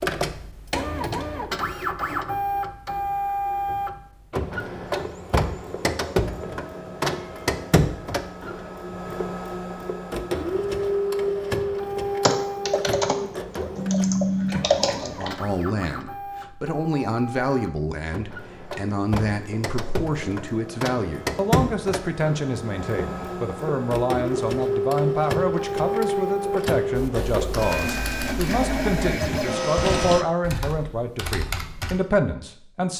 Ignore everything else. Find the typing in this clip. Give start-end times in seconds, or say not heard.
12.2-15.3, 26.9-32.0.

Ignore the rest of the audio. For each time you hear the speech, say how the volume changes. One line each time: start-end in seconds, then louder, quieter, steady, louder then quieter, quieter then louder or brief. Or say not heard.
15.0-32.9 steady.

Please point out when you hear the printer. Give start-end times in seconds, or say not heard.
0.0-30.2.